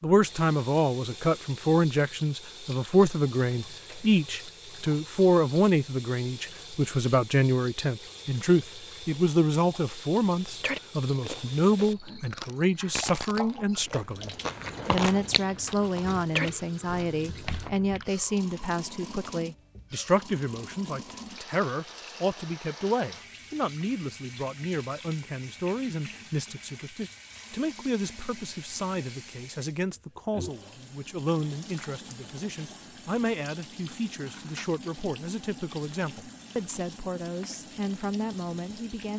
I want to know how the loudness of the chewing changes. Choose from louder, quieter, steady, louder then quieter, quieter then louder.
louder.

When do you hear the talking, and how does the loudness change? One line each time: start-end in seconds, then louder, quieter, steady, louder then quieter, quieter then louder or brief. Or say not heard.
0.0-39.1 quieter.